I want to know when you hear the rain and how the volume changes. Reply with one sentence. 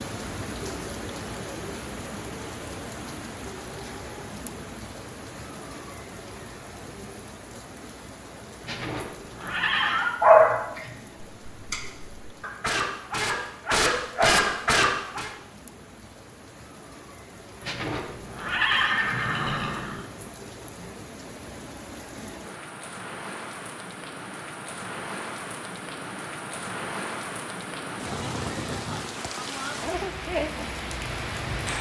The rain can be heard from 0.0 to 31.7 s, getting quieter then louder.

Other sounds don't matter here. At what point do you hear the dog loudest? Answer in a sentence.
The volume of the dog peaks at 10 seconds.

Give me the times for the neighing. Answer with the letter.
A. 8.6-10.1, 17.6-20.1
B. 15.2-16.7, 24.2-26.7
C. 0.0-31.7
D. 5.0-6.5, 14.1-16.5
A.